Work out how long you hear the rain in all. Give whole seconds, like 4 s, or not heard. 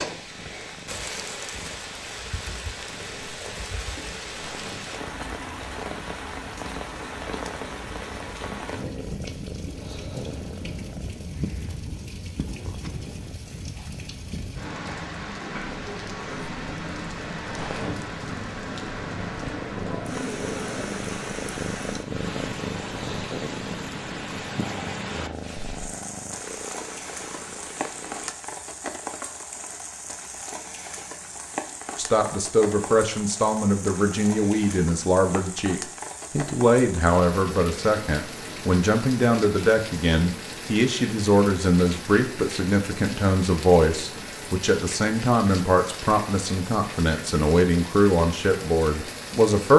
50 s.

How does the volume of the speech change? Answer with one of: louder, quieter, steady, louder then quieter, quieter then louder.
steady.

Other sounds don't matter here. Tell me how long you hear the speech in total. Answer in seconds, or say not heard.
18 s.